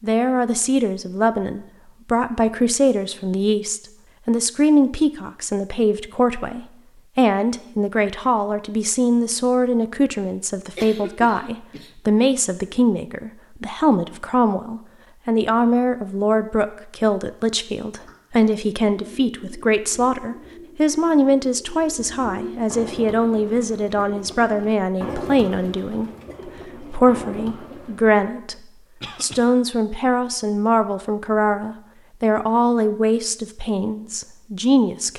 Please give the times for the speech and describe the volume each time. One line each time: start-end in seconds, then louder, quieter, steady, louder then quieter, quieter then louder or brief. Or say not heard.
0.0-35.1 steady.